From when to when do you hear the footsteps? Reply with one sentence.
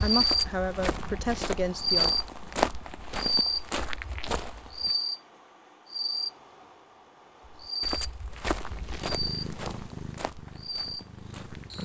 You can hear the footsteps from 0.0 to 5.0 s and from 7.6 to 11.8 s.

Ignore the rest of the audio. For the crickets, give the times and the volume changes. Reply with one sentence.
You can hear the crickets from 0.0 to 11.8 s, getting quieter.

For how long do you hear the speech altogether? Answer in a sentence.
You can hear the speech for 2 seconds altogether.